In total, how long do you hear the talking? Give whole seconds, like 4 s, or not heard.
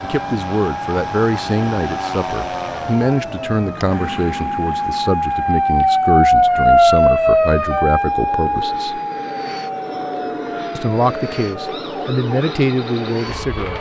12 s.